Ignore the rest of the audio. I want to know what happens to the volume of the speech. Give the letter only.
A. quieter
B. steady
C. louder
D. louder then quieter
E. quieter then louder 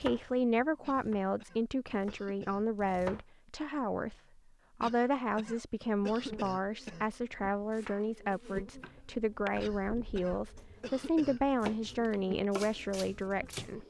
B.